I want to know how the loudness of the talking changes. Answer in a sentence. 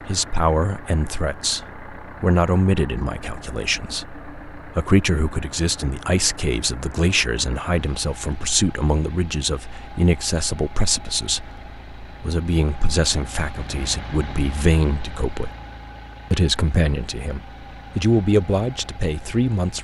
The volume of the talking stays about the same.